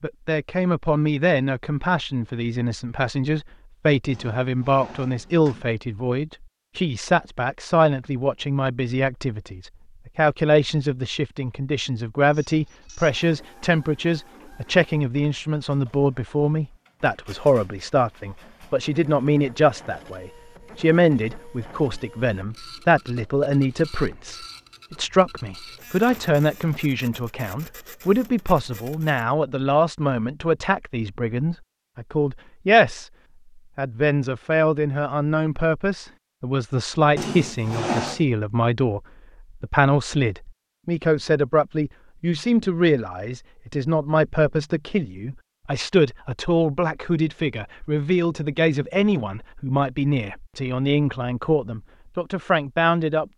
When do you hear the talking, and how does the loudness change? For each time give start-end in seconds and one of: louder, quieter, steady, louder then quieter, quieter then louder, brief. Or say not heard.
0.0-33.1 steady
33.8-53.2 steady.